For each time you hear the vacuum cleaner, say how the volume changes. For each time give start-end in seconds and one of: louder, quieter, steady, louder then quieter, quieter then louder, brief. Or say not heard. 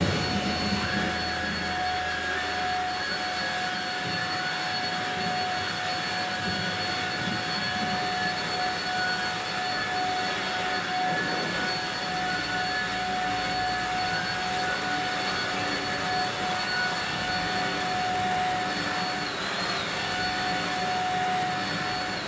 0.0-22.2 steady.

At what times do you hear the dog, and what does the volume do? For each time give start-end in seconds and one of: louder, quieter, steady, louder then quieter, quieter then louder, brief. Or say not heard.
not heard.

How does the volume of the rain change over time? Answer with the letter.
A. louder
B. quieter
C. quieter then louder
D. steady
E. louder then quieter
D.